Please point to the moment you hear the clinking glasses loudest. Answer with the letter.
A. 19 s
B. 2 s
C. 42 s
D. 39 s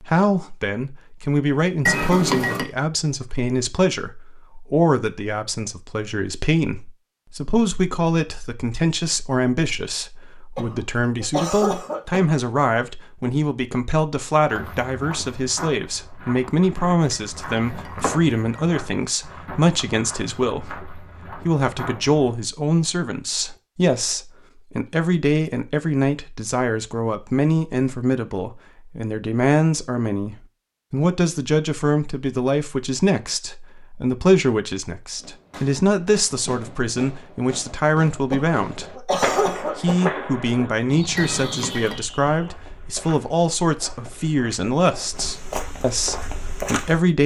B.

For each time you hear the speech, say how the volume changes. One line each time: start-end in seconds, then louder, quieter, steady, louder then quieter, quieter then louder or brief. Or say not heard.
0.0-47.2 steady.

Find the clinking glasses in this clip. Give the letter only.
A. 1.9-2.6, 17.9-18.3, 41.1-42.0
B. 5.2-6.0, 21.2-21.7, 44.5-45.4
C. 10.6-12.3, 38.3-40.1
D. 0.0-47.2
A.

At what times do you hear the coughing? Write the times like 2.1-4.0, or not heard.
10.6-12.3, 38.3-40.1.